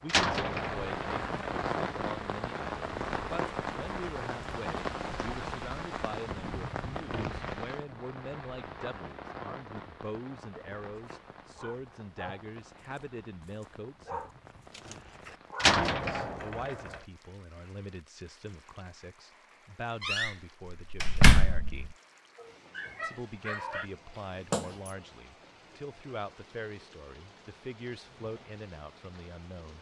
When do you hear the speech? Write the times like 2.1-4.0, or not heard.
0.0-14.2, 15.7-22.0, 23.0-29.7.